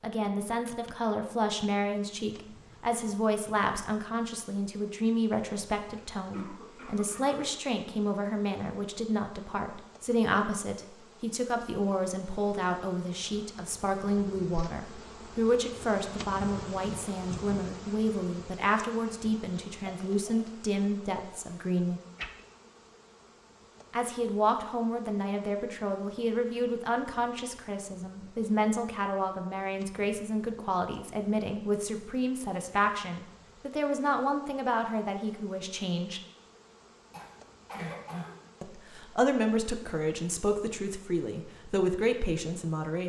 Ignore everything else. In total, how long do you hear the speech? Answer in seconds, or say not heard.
39 s.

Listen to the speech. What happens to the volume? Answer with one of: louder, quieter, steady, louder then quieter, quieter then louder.
steady.